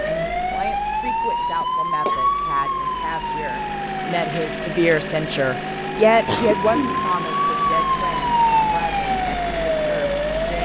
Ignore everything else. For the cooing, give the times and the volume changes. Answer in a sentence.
The cooing can't be heard in this clip.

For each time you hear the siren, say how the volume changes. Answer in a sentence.
You can hear the siren from 0.0 to 10.6 s, getting quieter then louder.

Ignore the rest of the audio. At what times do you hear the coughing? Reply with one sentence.
You can hear the coughing from 1.4 to 2.2 s and from 6.2 to 7.0 s.